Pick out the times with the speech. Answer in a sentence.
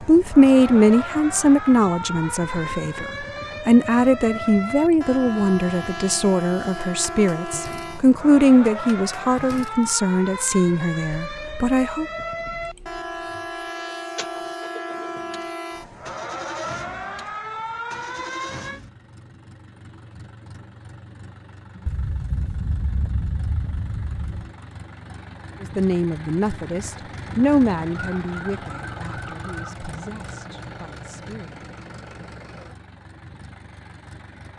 The speech can be heard from 0.1 to 12.1 s and from 25.6 to 31.6 s.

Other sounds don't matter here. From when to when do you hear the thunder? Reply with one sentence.
You can hear the thunder from 21.9 to 24.5 s.